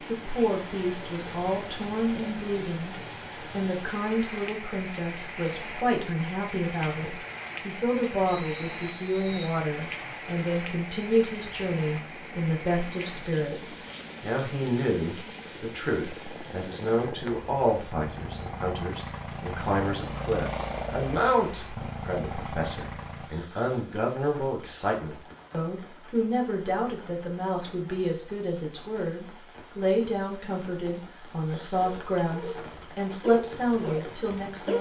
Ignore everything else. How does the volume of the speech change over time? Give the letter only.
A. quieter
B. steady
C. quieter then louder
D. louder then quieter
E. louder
B.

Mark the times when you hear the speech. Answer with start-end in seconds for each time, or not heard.
0.1-34.7.